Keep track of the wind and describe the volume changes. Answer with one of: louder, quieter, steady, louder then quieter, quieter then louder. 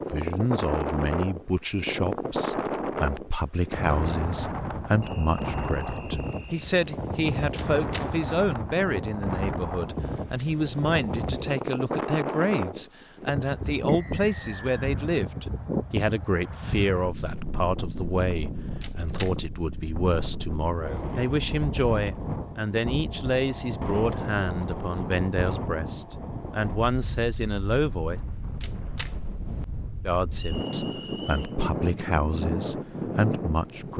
steady.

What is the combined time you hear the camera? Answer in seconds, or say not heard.
2 s.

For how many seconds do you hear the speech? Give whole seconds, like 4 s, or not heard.
32 s.